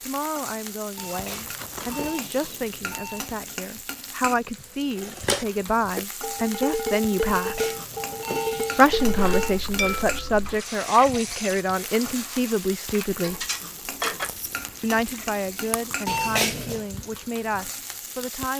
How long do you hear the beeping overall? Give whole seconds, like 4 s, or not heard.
6 s.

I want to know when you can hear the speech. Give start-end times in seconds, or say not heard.
0.0-7.7, 8.8-13.4, 14.8-18.5.